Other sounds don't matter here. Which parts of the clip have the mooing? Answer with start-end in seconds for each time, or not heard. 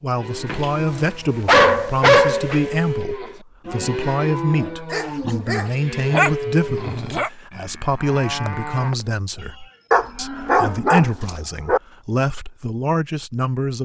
0.1-10.8.